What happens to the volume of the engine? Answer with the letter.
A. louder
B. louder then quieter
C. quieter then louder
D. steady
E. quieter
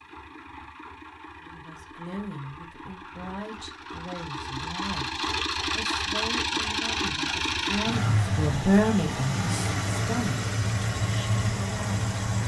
A.